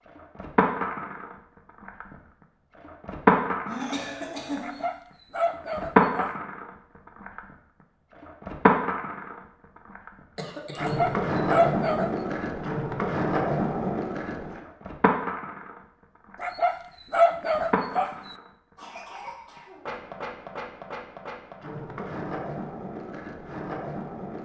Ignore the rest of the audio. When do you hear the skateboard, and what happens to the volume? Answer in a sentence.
You can hear the skateboard from 0.1 to 24.3 s, getting quieter.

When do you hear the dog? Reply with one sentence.
You can hear the dog from 4.6 to 6.3 s, from 10.8 to 12.1 s and from 16.4 to 18.4 s.